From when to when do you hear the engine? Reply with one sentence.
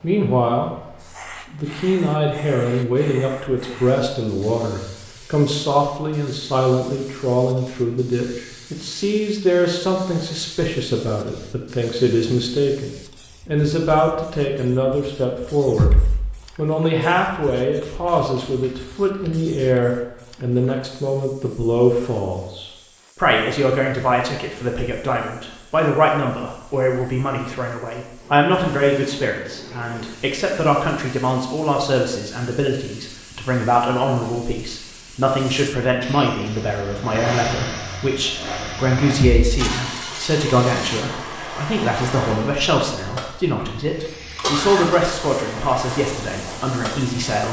The engine can be heard from 36.5 to 47.3 s.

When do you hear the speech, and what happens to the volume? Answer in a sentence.
You can hear the speech briefly from 0.0 to 0.9 s; from 1.5 to 15.9 s, at a steady volume; and from 16.6 to 47.4 s, at a steady volume.